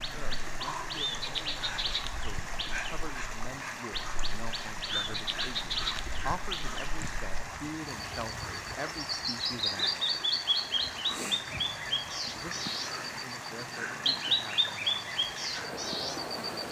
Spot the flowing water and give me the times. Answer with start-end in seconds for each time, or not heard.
0.0-16.6.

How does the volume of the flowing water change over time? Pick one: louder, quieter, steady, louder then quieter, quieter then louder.
steady.